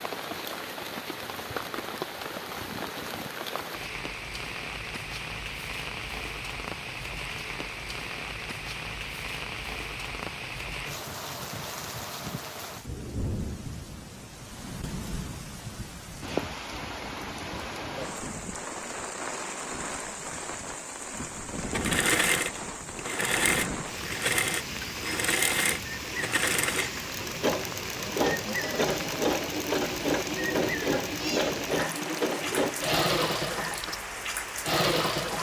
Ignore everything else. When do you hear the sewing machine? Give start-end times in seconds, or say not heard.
21.6-35.3.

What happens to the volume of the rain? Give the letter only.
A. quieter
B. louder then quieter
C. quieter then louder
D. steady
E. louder
D.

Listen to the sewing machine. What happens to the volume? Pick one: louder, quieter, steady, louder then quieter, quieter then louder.
steady.